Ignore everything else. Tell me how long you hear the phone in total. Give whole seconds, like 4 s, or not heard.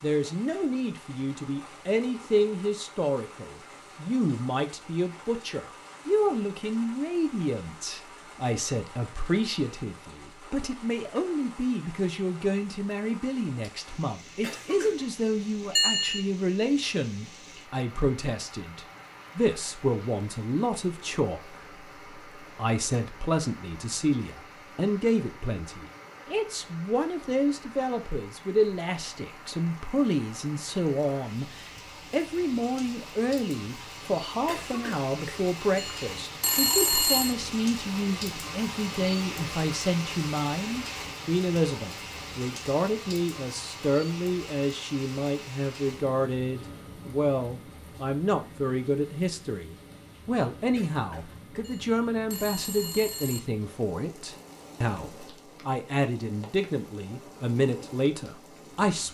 4 s.